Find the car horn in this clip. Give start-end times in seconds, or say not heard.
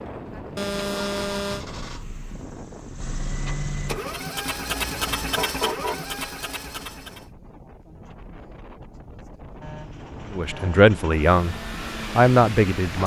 0.6-1.6, 4.8-6.0, 9.6-10.8.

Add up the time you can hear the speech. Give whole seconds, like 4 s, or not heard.
2 s.